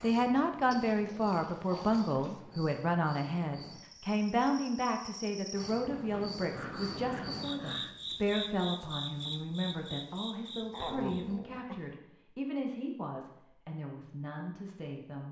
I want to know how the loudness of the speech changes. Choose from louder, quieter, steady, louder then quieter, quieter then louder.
quieter.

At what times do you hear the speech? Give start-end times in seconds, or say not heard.
0.0-15.2.